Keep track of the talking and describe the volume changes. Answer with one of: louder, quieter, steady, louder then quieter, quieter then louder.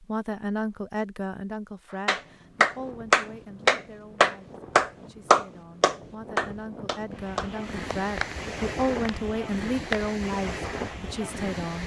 quieter then louder.